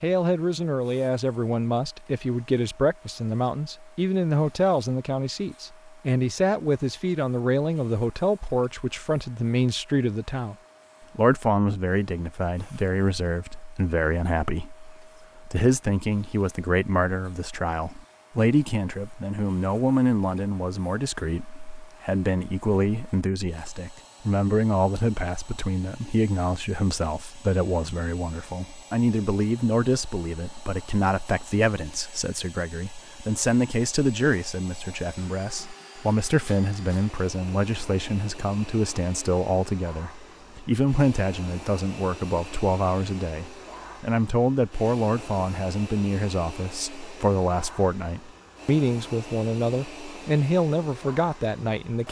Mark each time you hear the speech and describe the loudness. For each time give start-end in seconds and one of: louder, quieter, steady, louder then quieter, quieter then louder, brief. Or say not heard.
0.0-10.6 steady
11.2-52.0 steady.